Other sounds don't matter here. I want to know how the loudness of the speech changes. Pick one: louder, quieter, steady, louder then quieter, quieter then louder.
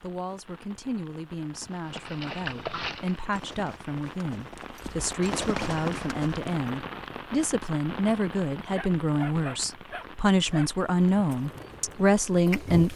louder.